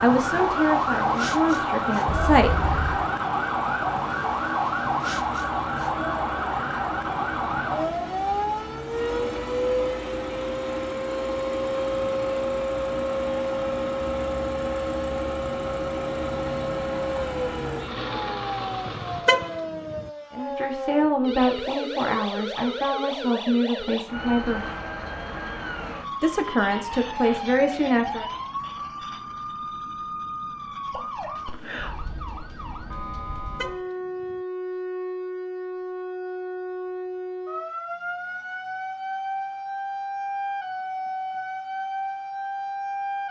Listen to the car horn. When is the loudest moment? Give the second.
19 s.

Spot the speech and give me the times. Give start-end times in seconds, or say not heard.
0.0-2.5, 20.3-24.7, 26.2-28.3.